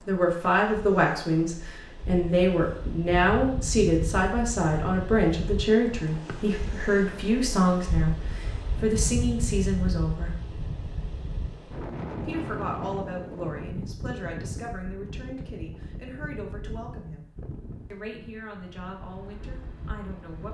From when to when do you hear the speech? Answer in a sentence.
The speech can be heard from 0.1 to 10.4 s, from 12.2 to 17.2 s and from 17.9 to 20.4 s.